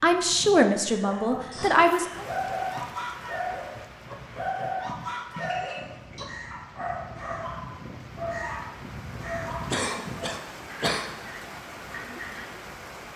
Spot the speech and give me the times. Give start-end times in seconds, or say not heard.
0.0-2.2.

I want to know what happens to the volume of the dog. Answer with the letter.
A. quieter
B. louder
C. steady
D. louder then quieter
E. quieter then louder
A.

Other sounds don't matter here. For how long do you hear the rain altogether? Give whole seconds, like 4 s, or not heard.
11 s.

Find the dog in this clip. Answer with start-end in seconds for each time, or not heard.
1.1-12.6.